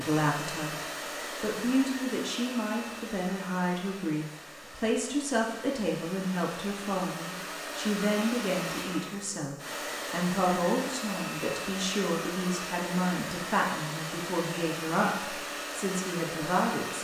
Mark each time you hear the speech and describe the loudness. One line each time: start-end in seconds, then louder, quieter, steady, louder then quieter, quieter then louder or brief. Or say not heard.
0.0-16.9 steady.